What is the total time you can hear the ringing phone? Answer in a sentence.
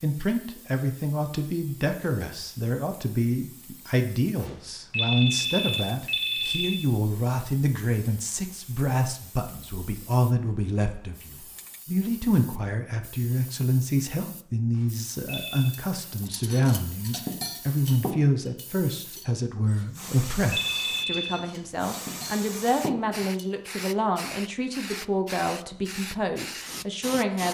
The ringing phone can be heard for 5 seconds in total.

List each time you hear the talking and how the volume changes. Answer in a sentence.
The talking can be heard from 0.0 to 27.5 s, at a steady volume.